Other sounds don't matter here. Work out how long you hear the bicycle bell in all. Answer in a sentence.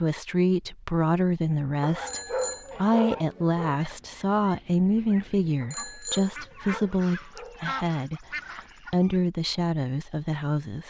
You can hear the bicycle bell for 2 seconds altogether.